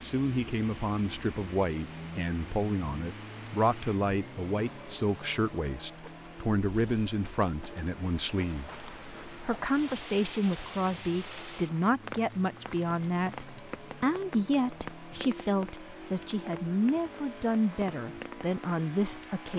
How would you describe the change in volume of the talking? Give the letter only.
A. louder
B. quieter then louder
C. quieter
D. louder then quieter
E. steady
E.